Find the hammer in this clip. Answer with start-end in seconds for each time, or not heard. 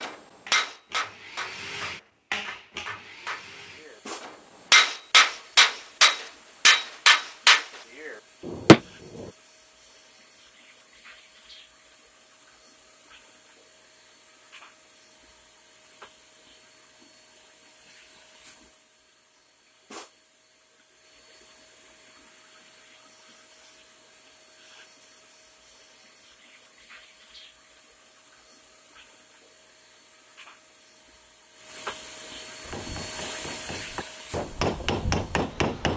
0.0-9.3, 32.6-35.9.